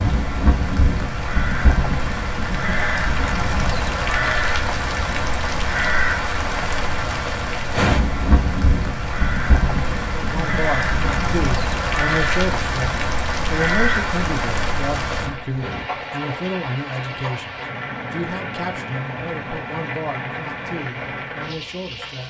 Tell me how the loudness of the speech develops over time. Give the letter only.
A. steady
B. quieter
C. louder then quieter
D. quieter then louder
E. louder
B.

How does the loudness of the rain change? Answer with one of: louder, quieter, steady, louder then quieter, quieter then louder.
quieter.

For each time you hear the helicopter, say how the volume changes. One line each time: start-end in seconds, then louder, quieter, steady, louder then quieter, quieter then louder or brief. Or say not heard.
not heard.